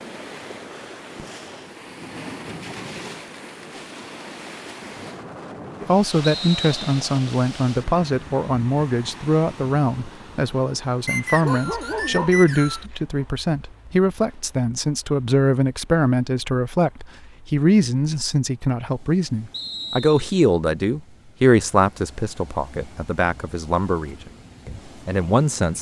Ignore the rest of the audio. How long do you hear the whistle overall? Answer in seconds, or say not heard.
3 s.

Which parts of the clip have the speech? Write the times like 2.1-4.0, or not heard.
5.8-25.7.